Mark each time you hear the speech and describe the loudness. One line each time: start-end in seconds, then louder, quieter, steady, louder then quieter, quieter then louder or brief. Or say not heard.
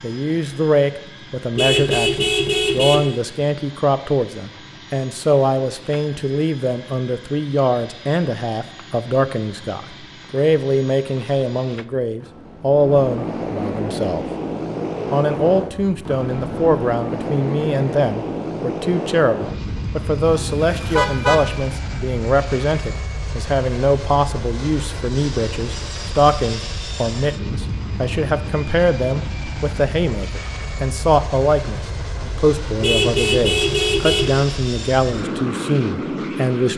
0.0-14.2 steady
15.1-36.7 steady.